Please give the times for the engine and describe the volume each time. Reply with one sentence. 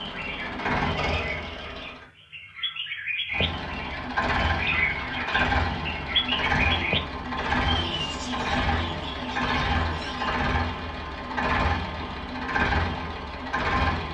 The engine can be heard briefly from 0.0 to 2.0 s; and from 3.3 to 14.1 s, at a steady volume.